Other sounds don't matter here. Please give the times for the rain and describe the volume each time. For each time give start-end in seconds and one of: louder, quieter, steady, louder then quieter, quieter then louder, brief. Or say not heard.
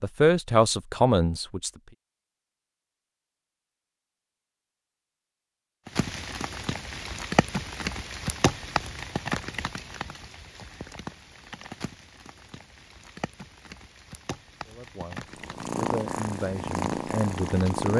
5.8-17.9 quieter.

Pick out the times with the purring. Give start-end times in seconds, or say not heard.
15.3-17.9.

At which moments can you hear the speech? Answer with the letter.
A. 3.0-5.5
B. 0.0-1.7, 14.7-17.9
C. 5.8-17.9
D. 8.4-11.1
B.